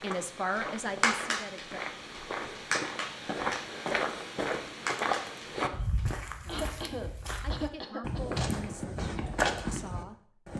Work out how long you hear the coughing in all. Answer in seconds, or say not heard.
2 s.